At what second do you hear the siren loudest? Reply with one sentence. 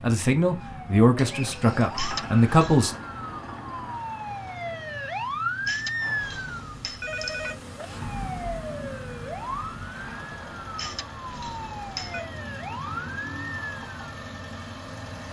The volume of the siren peaks at 6 seconds.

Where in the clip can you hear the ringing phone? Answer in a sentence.
You can hear the ringing phone from 1.9 to 2.9 s, from 5.7 to 7.6 s and from 10.8 to 12.3 s.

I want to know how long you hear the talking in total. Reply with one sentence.
You can hear the talking for 3 seconds altogether.